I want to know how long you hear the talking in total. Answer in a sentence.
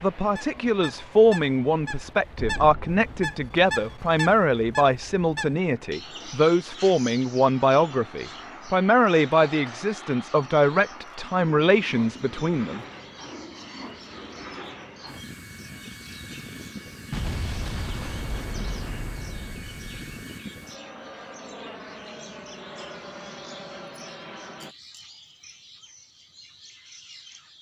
The talking can be heard for 13 seconds in total.